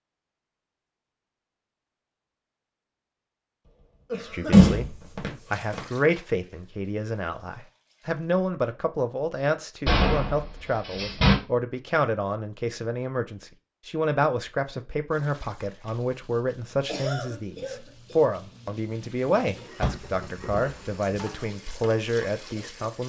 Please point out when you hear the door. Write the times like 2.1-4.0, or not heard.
4.5-5.8, 9.8-11.3, 19.8-21.1.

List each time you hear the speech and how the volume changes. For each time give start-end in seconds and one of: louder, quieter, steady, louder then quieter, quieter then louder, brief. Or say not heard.
4.2-23.0 steady.